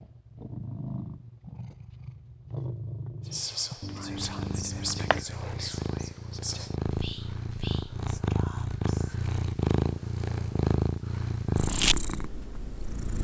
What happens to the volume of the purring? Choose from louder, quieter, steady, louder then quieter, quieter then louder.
louder.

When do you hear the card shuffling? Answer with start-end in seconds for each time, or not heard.
3.8-5.2.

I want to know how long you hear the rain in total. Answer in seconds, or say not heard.
not heard.